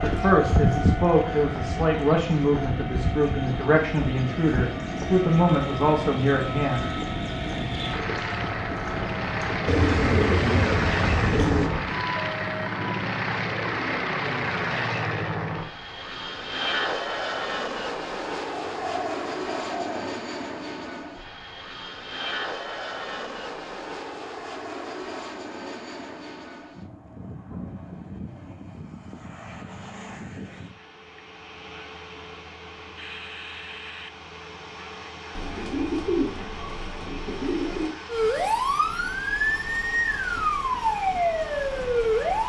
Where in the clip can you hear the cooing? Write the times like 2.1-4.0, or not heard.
9.7-11.7, 18.5-20.1, 35.4-38.0.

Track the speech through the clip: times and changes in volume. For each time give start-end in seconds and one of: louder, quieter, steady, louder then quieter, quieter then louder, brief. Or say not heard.
0.0-6.8 steady.